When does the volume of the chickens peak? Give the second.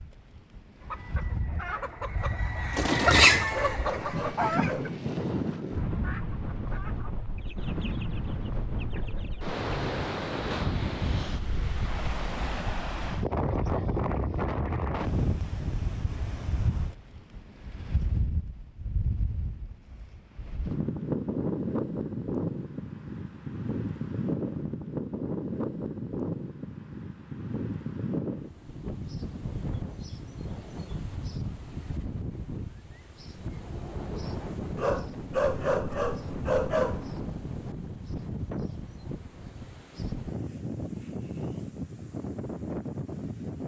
3 s.